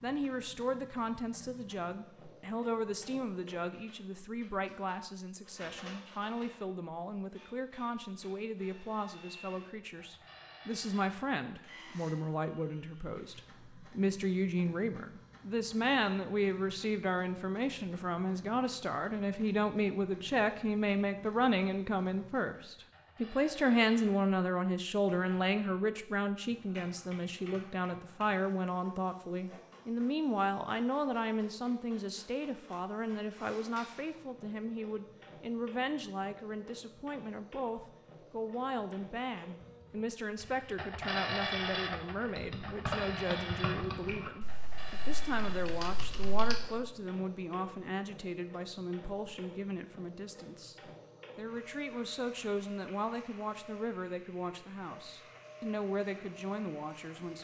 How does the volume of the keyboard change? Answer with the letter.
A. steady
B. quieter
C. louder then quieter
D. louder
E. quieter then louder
E.